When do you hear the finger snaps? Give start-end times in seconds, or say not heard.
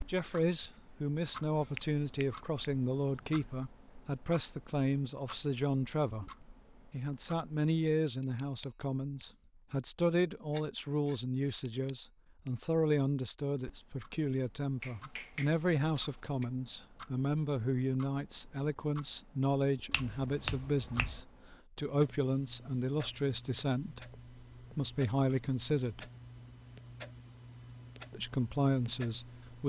1.6-3.5, 14.8-16.5, 19.9-21.2.